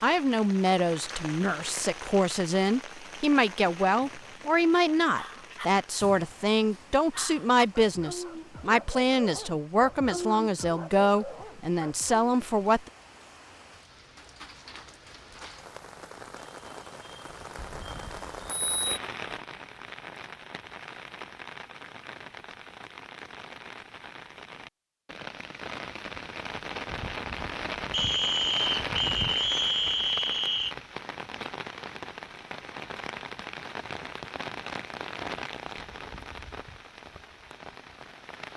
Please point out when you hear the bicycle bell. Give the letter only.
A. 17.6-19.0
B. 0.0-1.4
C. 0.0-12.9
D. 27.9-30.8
A.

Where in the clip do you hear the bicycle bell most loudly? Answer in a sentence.
The volume of the bicycle bell peaks at 19 seconds.